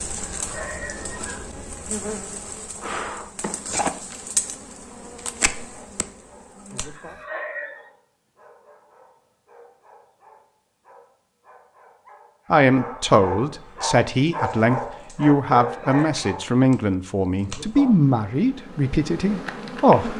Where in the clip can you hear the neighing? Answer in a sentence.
You can hear the neighing from 0.3 to 1.4 s, from 6.8 to 7.9 s and from 15.6 to 16.1 s.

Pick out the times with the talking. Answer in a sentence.
You can hear the talking from 12.5 to 20.1 s.